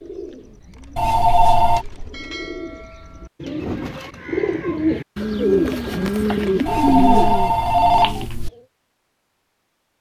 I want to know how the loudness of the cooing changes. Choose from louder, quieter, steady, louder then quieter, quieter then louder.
louder.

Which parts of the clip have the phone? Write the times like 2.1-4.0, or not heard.
0.9-1.9, 6.7-8.5.